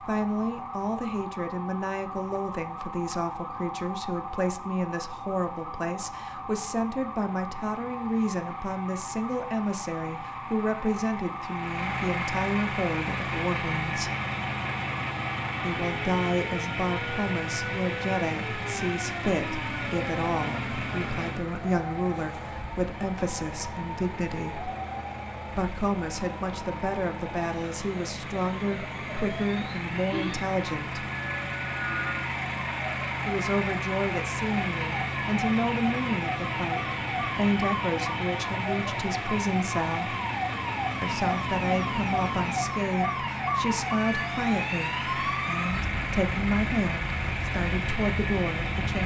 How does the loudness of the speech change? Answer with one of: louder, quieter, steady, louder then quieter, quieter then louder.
steady.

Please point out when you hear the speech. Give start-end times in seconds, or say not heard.
0.1-14.1, 15.6-24.7, 25.6-31.1, 33.2-40.1, 41.0-49.0.